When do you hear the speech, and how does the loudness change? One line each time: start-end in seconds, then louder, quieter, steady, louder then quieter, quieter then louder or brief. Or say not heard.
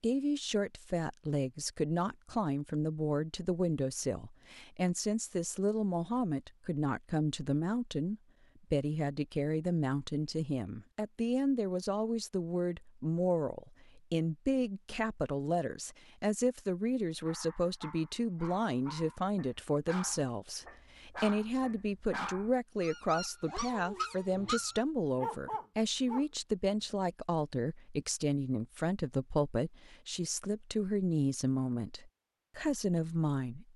0.0-33.7 steady.